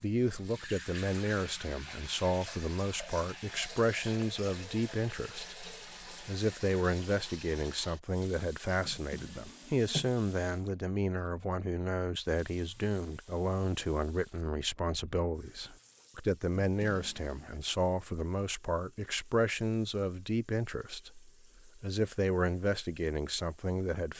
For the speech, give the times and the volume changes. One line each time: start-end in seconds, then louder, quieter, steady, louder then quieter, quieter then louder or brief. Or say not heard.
0.0-24.1 steady.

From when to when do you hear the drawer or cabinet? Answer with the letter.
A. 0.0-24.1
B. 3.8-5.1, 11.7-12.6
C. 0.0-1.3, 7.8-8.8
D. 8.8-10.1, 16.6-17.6
D.